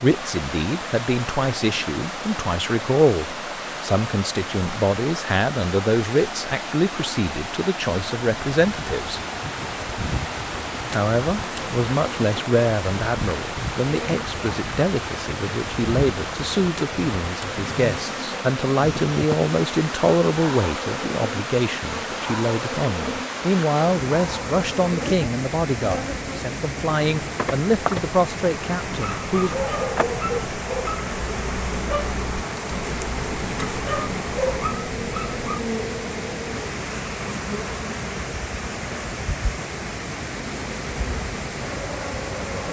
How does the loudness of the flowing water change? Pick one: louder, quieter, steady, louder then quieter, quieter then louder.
steady.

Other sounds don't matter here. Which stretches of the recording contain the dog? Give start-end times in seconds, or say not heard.
28.8-35.6.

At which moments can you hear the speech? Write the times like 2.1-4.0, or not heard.
0.0-9.2, 10.8-29.6.